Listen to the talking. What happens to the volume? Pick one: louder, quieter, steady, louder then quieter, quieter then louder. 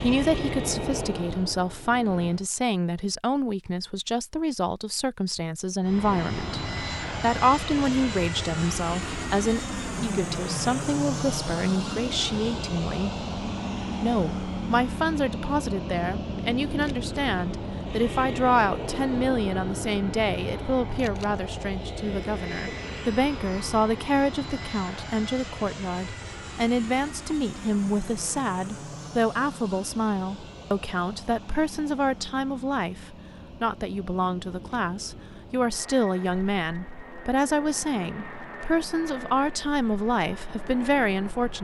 steady.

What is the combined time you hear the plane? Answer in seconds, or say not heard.
38 s.